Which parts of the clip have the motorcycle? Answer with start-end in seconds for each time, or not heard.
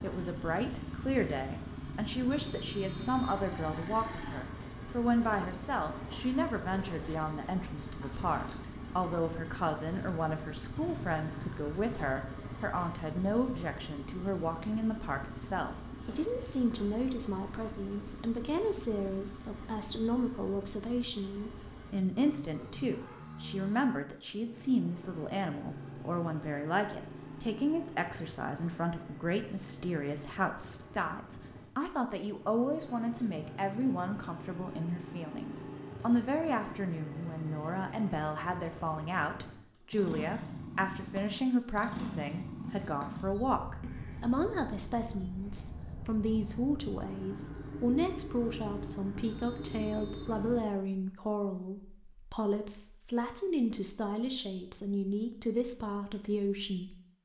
0.0-50.6.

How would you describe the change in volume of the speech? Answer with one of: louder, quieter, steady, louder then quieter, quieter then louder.
steady.